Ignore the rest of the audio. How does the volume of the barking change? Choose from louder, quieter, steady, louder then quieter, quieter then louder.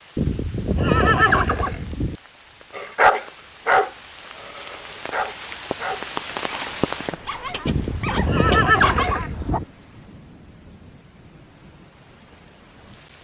quieter then louder.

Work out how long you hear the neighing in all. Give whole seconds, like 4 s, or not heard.
4 s.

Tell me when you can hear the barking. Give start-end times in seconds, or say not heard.
2.8-9.6.